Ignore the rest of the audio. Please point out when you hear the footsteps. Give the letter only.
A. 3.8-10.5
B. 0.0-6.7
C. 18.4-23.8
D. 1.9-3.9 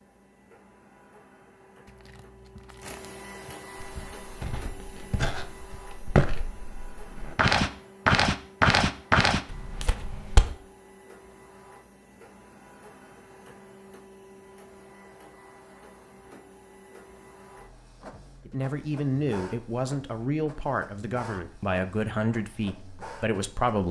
A.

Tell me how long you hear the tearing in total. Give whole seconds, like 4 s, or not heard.
2 s.